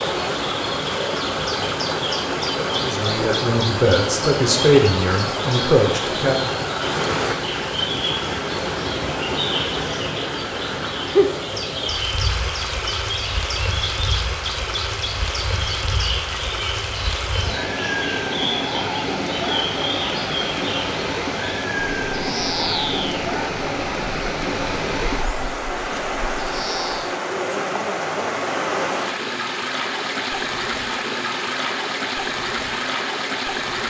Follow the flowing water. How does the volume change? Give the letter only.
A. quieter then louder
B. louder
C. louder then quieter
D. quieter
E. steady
E.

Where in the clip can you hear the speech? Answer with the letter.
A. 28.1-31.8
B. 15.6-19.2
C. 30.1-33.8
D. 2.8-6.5
D.